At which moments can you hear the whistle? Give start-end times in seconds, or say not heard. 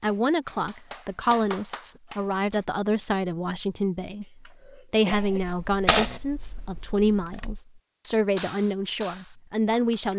not heard.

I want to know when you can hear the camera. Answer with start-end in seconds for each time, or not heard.
5.1-7.6.